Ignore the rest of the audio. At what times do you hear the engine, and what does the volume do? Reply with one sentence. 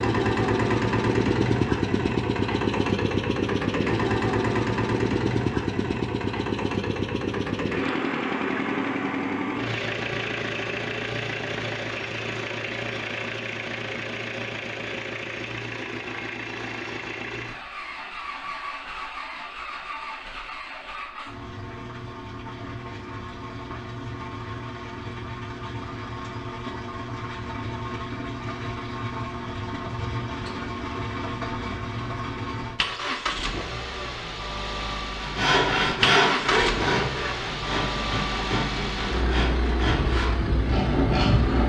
You can hear the engine from 0.0 to 41.6 s, getting quieter then louder.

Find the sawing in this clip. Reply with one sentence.
You can hear the sawing from 35.1 to 41.6 s.